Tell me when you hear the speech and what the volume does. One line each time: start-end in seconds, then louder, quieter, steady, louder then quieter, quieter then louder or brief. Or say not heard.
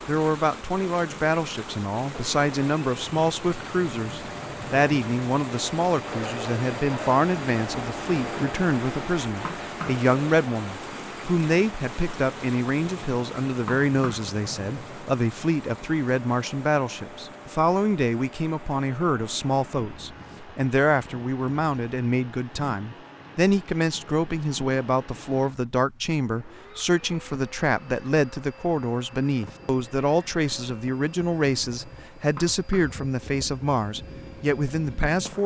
0.1-35.4 steady.